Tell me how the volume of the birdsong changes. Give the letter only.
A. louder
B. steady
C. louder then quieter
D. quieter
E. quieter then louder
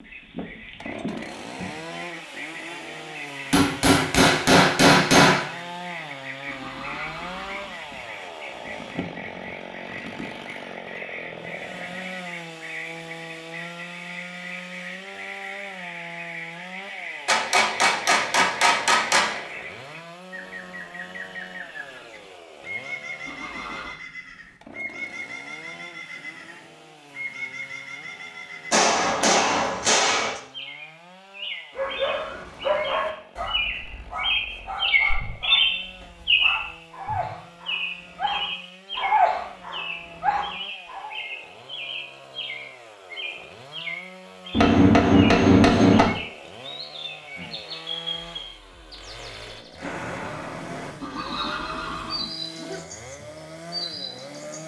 C.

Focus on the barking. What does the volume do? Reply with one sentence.
The volume of the barking goes down, then up.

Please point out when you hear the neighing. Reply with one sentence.
The neighing can be heard from 6.5 to 7.8 s, from 23.2 to 24.0 s and from 51.0 to 52.4 s.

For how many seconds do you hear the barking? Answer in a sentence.
You can hear the barking for 9 seconds altogether.